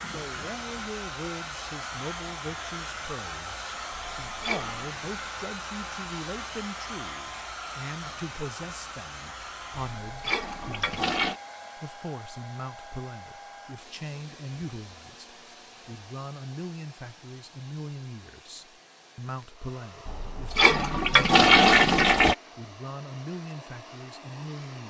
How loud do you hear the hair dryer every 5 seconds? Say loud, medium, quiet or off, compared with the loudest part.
loud, loud, medium, quiet, medium.